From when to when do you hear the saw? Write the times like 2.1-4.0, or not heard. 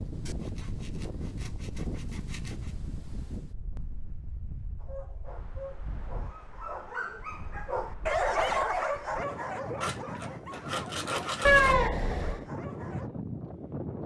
0.2-2.8, 9.8-11.8.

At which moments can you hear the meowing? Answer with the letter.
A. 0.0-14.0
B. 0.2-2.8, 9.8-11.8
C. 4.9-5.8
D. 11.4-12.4
D.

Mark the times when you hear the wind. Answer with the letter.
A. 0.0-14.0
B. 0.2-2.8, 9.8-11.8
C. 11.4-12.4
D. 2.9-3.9
A.